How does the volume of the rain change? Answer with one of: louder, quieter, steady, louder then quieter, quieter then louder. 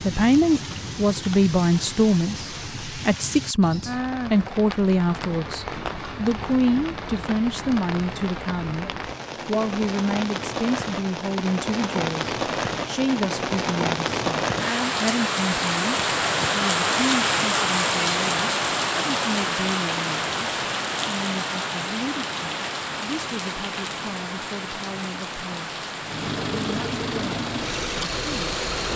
louder then quieter.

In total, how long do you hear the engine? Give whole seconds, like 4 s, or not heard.
3 s.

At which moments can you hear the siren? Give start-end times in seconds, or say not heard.
not heard.